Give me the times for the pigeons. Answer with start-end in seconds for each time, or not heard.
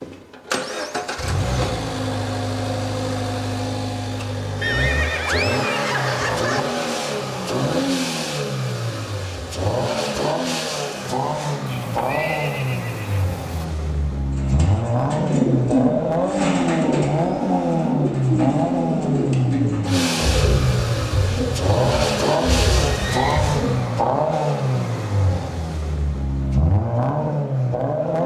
14.3-23.9.